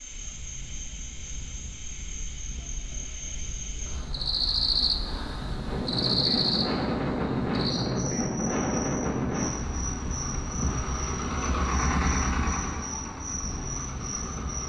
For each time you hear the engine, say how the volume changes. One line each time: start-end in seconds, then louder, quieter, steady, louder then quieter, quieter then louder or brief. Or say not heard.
9.0-14.6 louder then quieter.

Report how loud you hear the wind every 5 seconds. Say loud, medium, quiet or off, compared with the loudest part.
quiet, loud, medium.